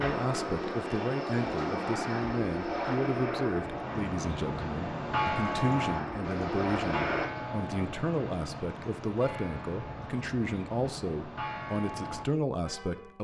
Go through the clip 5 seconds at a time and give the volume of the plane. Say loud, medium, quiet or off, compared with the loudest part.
loud, loud, off.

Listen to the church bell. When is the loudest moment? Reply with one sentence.
The volume of the church bell peaks at 5 seconds.